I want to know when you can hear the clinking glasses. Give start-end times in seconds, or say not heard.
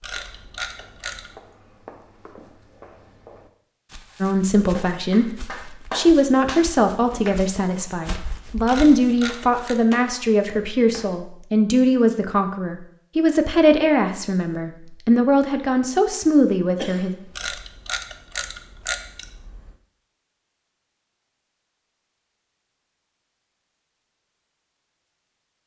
not heard.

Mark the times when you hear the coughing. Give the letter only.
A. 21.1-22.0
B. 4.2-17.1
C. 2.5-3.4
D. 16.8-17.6
D.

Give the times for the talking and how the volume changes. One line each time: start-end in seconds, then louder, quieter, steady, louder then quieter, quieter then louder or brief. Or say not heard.
4.2-17.1 steady.